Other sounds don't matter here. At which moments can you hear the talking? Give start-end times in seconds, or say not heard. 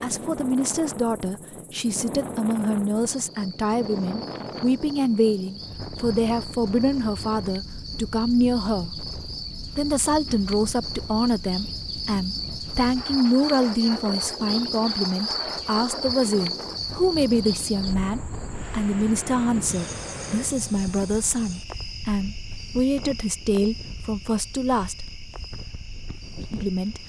0.0-8.9, 9.8-24.9, 26.5-27.0.